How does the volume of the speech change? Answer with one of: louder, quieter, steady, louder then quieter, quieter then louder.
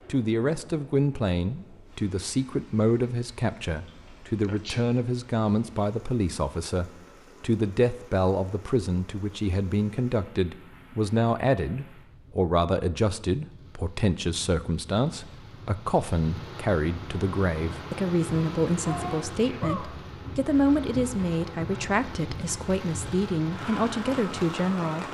steady.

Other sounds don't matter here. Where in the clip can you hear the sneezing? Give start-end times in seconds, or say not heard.
4.4-4.8, 18.9-19.9.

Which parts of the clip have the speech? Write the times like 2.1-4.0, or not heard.
0.1-25.0.